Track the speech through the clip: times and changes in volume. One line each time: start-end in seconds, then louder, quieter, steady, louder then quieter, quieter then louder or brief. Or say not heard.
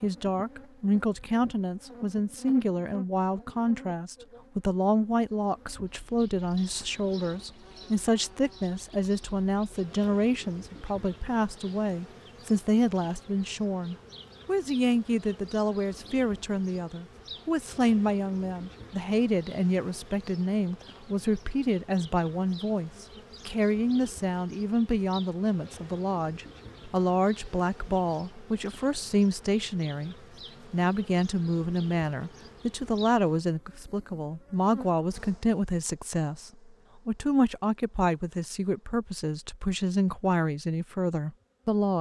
0.0-41.9 steady.